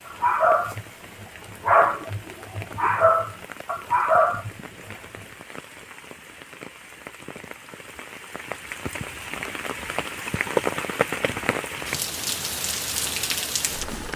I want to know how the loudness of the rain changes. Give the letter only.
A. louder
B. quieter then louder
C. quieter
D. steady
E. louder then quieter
A.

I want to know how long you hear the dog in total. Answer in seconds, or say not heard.
5 s.